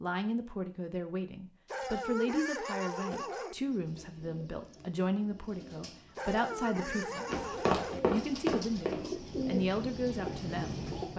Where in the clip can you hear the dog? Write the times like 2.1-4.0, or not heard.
1.6-3.5, 6.2-8.0.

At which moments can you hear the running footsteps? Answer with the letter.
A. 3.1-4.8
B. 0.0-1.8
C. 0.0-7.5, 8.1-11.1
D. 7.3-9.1
D.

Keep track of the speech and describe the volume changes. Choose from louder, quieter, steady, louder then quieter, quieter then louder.
steady.